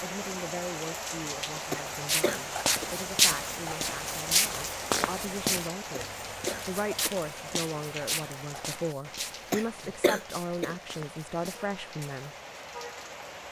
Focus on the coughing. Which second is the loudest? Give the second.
10 s.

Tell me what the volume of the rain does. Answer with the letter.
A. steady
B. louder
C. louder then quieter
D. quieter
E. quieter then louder
D.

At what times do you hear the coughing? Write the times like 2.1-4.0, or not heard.
1.7-2.9, 5.9-7.2, 9.5-10.8.